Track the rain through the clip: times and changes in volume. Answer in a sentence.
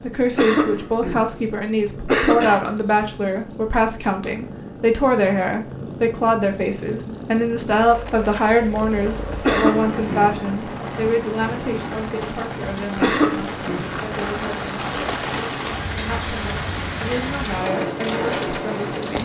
The rain can be heard from 8.9 to 19.1 s, getting louder.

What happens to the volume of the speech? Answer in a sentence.
The loudness of the speech goes down.